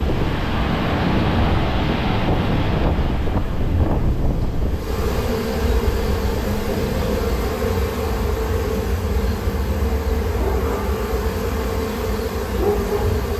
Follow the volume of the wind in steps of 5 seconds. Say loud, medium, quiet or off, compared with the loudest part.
loud, medium, off.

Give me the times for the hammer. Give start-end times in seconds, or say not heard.
not heard.